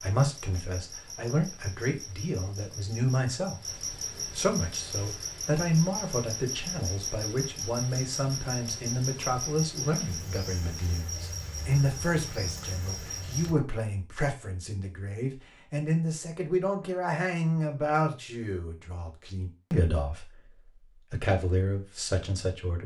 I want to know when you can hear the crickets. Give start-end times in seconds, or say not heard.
0.0-13.6.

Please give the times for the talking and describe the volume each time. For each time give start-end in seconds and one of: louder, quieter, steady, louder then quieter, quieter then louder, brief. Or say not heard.
0.0-22.8 steady.